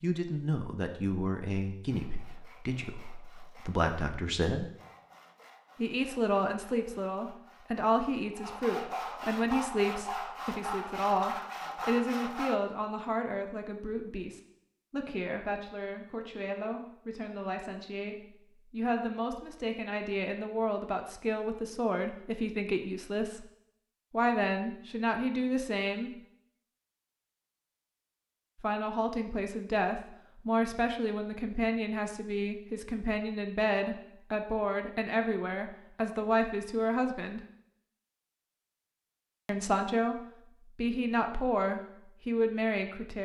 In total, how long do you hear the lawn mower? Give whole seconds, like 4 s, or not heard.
not heard.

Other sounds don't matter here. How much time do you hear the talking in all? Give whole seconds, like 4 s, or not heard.
37 s.